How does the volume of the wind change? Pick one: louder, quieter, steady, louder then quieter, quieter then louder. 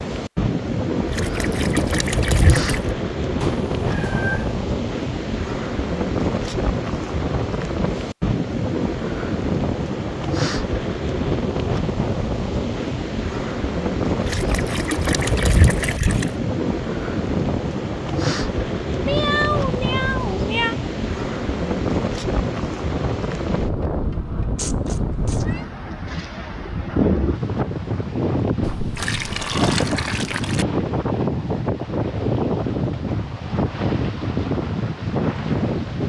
steady.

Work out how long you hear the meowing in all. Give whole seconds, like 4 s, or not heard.
4 s.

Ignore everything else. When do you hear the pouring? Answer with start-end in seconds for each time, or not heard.
1.1-2.9, 14.2-16.3, 28.6-30.6.